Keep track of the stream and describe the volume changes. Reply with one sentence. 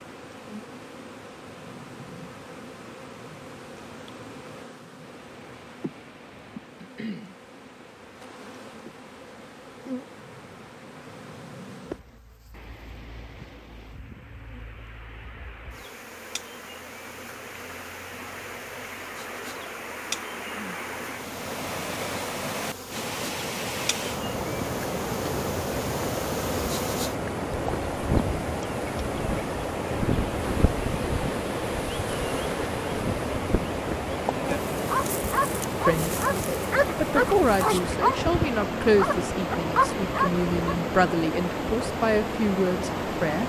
The loudness of the stream goes up.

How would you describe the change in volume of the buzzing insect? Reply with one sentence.
The loudness of the buzzing insect goes up.